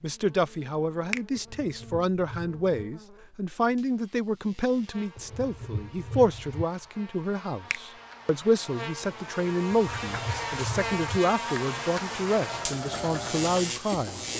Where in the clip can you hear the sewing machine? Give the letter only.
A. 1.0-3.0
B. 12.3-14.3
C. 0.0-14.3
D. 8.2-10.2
B.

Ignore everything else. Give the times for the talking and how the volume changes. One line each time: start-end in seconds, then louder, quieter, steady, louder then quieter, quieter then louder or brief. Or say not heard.
0.0-14.3 steady.